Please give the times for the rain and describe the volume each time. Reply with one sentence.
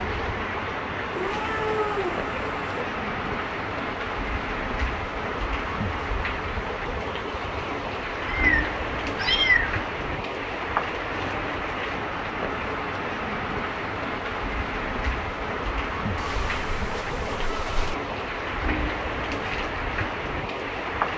The rain can be heard from 0.0 to 21.1 s, at a steady volume.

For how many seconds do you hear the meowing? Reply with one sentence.
You can hear the meowing for 5 seconds altogether.